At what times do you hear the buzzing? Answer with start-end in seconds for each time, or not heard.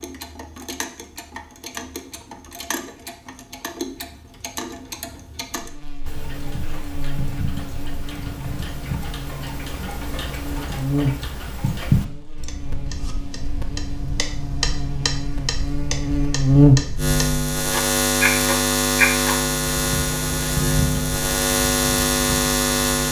5.5-23.0.